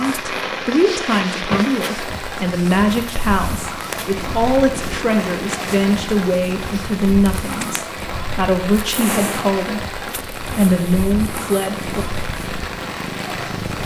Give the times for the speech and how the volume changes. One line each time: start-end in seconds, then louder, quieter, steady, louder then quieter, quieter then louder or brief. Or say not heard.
0.0-12.1 steady.